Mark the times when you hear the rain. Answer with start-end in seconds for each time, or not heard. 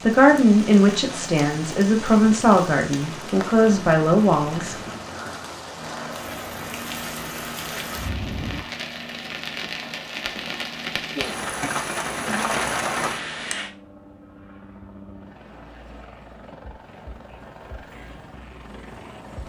0.0-13.7.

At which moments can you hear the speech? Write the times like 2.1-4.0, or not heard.
0.0-4.8.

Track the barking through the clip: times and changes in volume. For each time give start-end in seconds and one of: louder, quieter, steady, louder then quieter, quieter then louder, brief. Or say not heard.
not heard.